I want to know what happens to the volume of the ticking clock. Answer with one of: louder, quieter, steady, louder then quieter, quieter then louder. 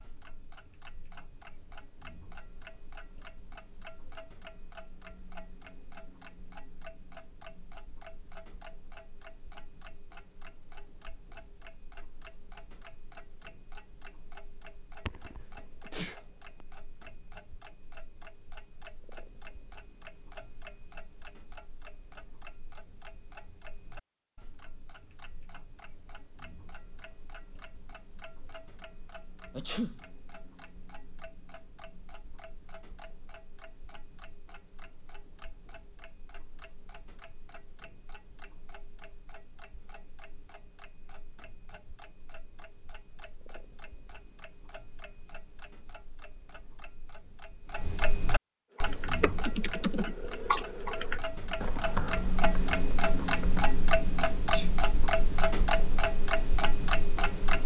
louder.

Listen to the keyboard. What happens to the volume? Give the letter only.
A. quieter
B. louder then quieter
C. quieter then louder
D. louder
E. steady
A.